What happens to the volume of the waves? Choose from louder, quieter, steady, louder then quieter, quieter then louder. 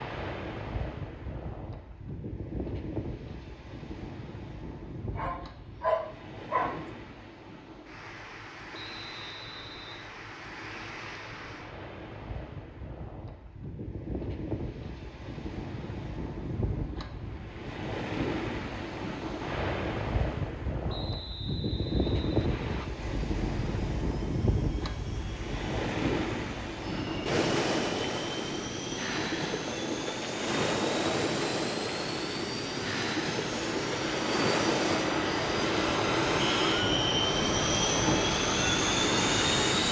louder.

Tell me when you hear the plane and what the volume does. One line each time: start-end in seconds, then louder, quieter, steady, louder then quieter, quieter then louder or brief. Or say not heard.
22.9-39.8 louder.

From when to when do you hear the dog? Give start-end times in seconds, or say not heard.
5.2-6.8.